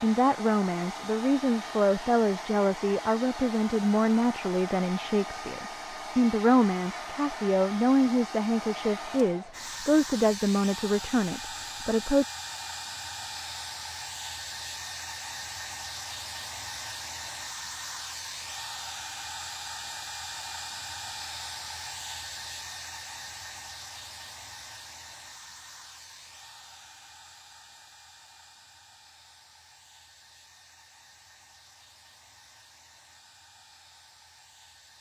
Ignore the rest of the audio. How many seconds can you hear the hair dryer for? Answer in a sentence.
The hair dryer can be heard for 35 seconds in total.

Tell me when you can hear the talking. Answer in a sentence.
You can hear the talking from 0.0 to 12.2 s.